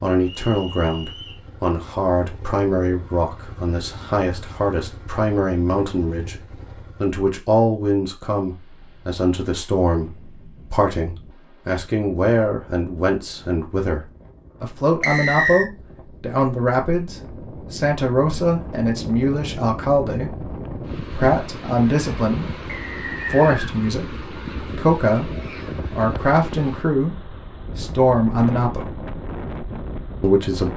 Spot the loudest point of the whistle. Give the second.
15 s.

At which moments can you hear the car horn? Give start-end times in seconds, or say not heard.
not heard.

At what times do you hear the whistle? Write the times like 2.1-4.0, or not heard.
0.2-1.4, 15.0-15.7, 22.6-23.7.